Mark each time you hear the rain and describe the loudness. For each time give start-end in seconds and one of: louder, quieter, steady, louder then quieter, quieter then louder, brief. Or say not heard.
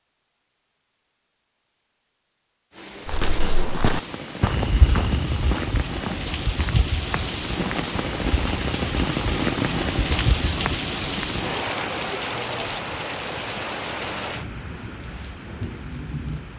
2.7-16.5 louder then quieter.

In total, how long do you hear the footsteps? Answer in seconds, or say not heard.
8 s.